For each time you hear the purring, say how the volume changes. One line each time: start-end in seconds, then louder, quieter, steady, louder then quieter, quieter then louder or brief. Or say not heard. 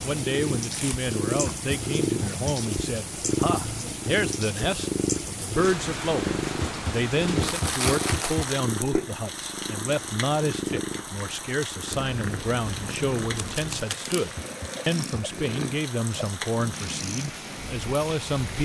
0.0-18.6 quieter.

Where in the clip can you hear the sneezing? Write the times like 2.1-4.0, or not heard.
not heard.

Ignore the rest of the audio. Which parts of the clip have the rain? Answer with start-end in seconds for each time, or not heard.
0.0-18.6.